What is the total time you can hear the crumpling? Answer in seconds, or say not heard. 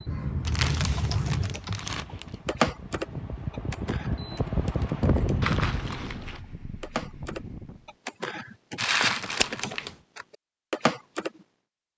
4 s.